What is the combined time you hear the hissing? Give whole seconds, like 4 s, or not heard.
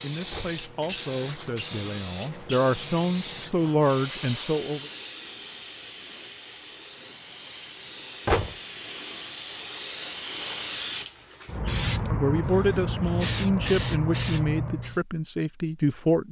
15 s.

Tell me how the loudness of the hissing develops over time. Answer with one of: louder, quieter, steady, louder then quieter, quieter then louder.
quieter then louder.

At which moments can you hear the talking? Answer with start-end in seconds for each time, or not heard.
0.0-4.9, 12.1-16.2.